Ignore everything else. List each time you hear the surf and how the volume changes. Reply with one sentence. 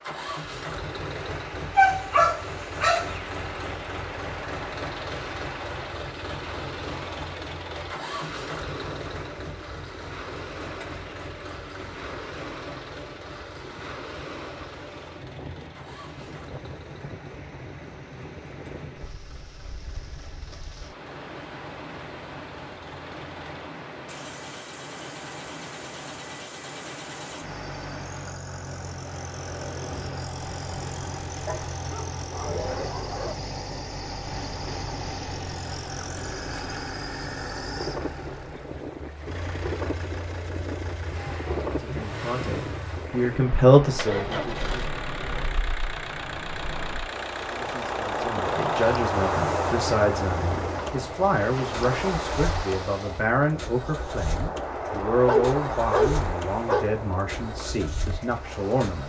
You can hear the surf from 0.0 to 59.0 s, getting louder.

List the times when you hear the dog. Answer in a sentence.
You can hear the dog from 1.8 to 3.1 s, from 31.4 to 33.4 s and from 55.1 to 56.9 s.